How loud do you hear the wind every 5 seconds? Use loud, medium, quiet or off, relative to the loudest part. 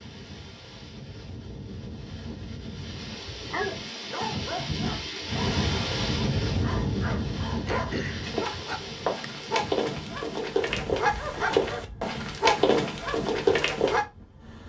medium, loud, quiet.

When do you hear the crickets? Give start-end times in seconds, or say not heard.
not heard.